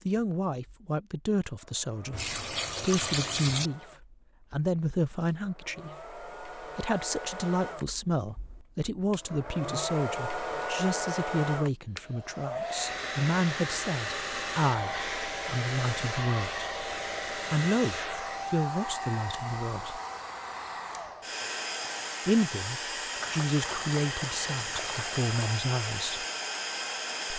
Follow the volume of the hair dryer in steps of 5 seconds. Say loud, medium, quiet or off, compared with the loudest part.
quiet, medium, loud, loud, loud, loud.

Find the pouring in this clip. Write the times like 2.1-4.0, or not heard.
2.1-3.7, 23.1-25.6.